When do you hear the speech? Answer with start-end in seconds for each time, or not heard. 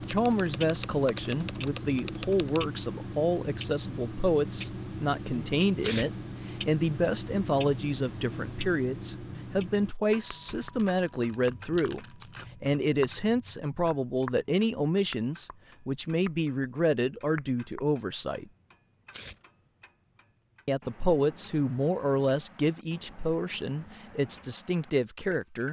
0.1-18.5, 20.6-25.6.